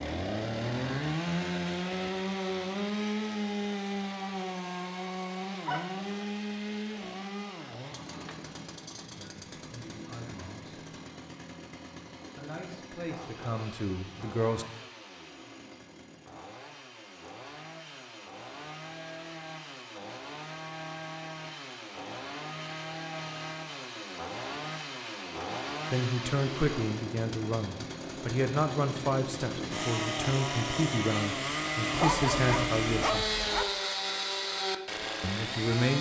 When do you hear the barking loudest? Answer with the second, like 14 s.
32 s.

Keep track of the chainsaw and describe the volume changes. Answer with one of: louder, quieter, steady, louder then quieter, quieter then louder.
quieter then louder.